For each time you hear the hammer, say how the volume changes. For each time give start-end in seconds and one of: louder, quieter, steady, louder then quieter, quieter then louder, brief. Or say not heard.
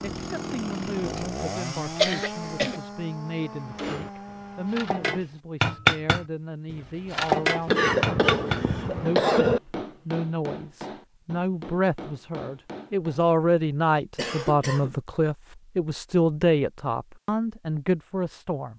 3.6-13.2 louder then quieter.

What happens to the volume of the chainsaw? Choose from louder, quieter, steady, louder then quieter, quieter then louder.
quieter.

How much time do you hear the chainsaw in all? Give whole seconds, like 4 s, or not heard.
5 s.